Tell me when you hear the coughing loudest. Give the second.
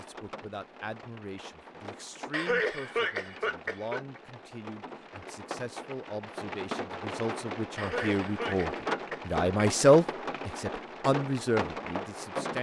3 s.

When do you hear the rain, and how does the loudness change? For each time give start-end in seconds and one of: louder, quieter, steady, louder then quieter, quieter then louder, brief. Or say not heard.
0.0-12.5 louder.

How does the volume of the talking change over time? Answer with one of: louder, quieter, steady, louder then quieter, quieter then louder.
louder.